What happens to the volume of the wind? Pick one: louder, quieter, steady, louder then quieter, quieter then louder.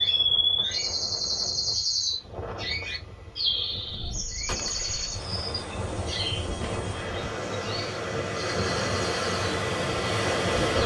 louder.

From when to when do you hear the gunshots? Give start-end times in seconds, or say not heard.
4.5-7.8.